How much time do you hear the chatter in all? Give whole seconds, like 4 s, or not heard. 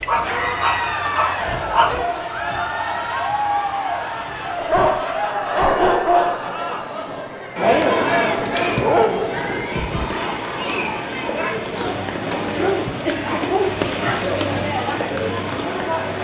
16 s.